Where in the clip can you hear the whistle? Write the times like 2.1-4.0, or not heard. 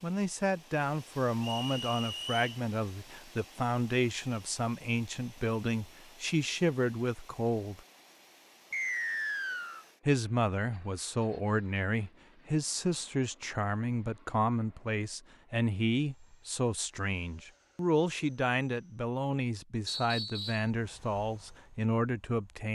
1.4-2.6, 8.7-9.8, 19.9-20.7.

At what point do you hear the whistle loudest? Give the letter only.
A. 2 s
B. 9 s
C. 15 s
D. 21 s
B.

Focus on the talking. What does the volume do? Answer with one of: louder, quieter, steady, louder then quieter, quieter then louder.
steady.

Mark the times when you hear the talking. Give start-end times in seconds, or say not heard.
0.0-7.8, 10.1-22.7.